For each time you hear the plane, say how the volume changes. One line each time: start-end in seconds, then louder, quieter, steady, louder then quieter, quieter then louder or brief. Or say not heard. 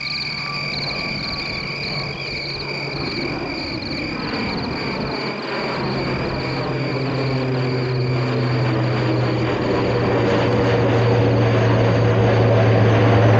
0.0-13.3 louder.